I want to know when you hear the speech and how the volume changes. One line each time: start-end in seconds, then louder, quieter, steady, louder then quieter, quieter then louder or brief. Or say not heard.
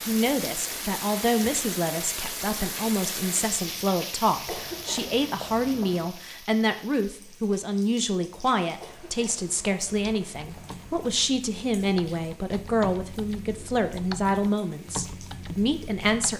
0.0-16.3 steady.